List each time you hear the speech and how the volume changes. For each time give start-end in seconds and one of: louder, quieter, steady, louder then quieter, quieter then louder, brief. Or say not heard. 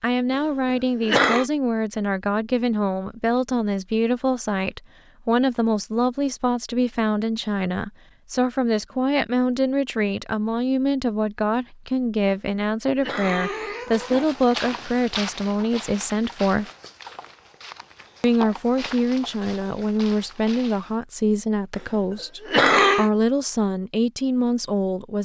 0.0-16.7 steady
18.2-25.2 steady.